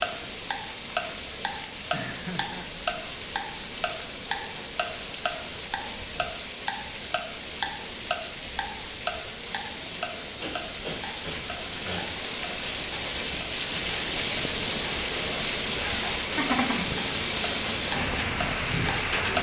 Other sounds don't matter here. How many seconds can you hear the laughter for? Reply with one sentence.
You can hear the laughter for 2 seconds altogether.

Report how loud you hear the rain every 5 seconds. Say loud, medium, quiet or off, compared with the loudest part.
medium, medium, loud, loud.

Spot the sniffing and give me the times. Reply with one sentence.
The sniffing can be heard from 10.3 to 12.1 s.